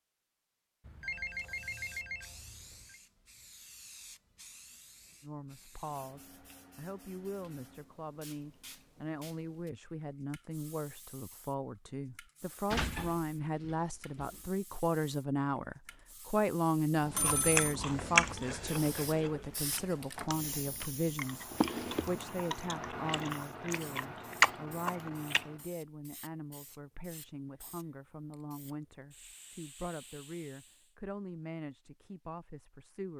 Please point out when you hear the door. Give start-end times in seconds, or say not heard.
12.7-14.4.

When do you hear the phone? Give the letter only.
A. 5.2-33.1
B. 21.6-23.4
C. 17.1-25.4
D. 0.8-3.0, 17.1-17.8
D.